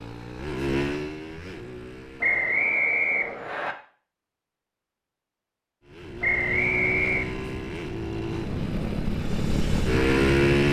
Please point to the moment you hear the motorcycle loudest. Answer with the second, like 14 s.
10 s.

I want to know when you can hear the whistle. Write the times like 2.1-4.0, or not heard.
2.2-3.8, 6.2-7.2.